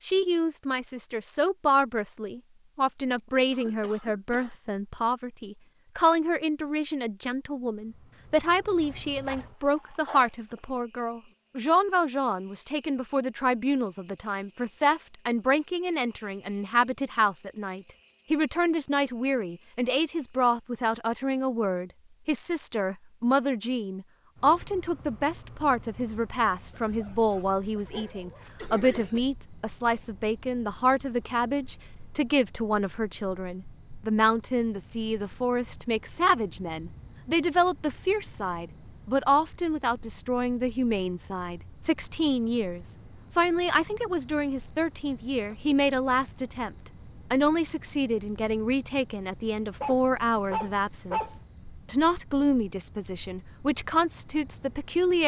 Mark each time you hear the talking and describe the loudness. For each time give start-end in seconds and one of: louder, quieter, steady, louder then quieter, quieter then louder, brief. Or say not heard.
0.0-55.2 steady.